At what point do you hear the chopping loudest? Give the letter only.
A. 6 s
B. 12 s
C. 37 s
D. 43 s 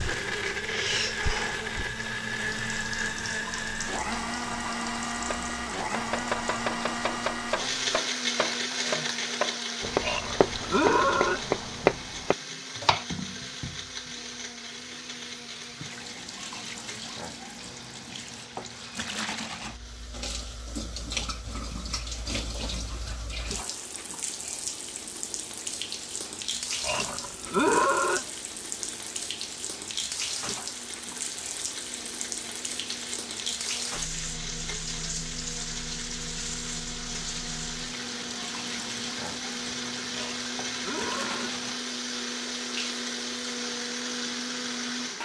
B.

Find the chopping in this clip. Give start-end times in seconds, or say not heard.
5.2-13.1.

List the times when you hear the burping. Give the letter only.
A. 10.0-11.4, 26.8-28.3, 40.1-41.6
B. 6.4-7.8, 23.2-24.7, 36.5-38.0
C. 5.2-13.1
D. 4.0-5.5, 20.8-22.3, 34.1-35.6
A.